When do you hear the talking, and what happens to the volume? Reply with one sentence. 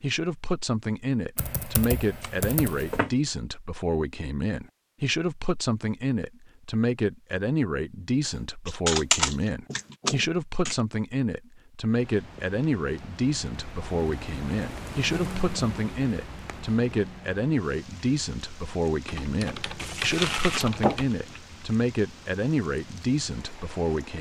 The talking can be heard from 0.0 to 24.1 s, at a steady volume.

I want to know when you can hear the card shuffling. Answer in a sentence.
You can hear the card shuffling from 2.2 to 3.1 s and from 19.8 to 21.4 s.